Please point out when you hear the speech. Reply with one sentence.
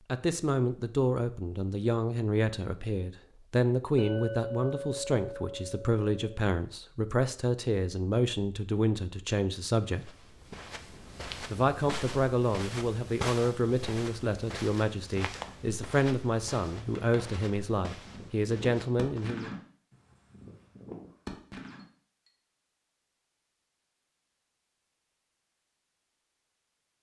The speech can be heard from 0.1 to 10.1 s and from 11.5 to 19.6 s.